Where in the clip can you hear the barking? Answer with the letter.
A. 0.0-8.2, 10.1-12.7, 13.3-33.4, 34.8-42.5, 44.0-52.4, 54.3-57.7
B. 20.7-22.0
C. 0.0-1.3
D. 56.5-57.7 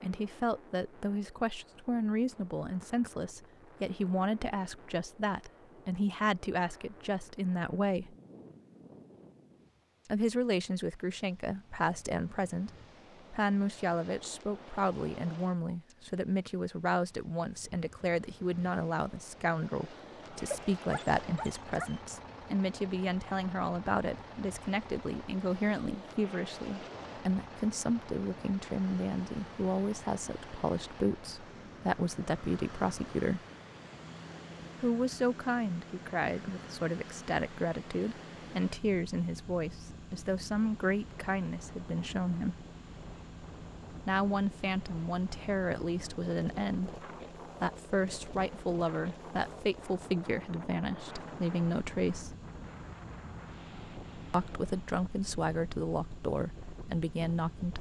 B.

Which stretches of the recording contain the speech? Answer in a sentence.
You can hear the speech from 0.0 to 8.2 s, from 10.1 to 12.7 s, from 13.3 to 33.4 s, from 34.8 to 42.5 s, from 44.0 to 52.4 s and from 54.3 to 57.7 s.